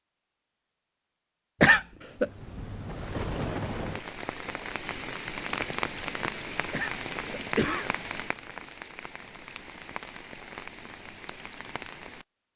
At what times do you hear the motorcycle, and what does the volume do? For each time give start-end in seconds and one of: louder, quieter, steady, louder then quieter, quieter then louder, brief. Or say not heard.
not heard.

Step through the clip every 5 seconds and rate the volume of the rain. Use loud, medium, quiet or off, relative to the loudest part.
loud, loud, medium.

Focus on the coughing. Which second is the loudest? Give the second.
2 s.